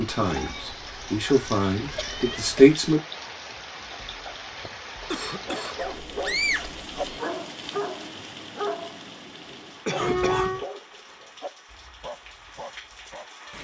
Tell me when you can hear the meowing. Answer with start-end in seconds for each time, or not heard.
0.2-2.7, 5.8-7.2, 10.0-10.7.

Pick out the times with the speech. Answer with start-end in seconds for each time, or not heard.
0.0-3.0.